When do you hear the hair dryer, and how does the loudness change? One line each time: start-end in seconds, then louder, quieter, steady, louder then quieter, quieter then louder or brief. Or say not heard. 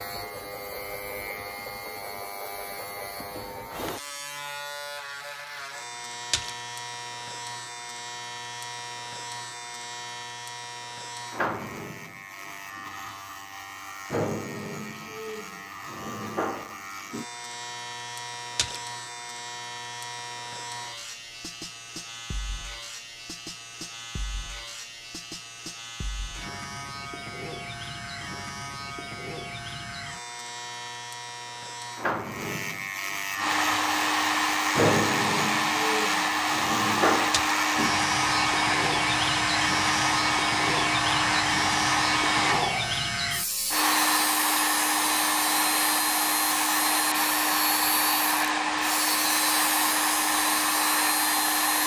33.4-51.8 steady.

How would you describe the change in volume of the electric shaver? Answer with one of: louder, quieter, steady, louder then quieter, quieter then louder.
louder.